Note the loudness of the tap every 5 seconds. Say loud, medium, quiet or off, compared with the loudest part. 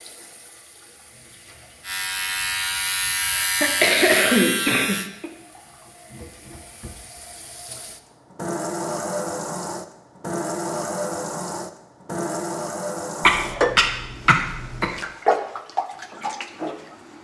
quiet, medium, loud, loud.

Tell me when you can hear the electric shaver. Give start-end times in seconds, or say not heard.
1.8-5.1.